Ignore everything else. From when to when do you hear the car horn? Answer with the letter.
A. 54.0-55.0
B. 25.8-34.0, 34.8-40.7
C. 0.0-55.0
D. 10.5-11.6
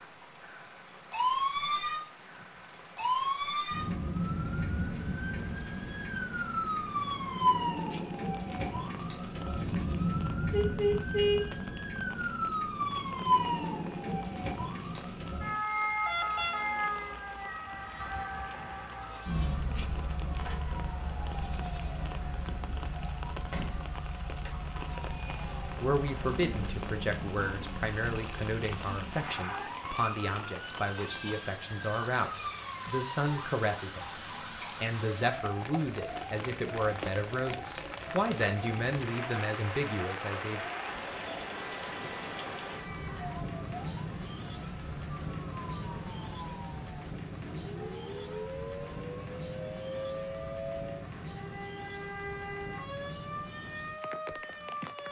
D.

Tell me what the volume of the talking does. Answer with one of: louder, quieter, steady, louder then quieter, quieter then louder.
steady.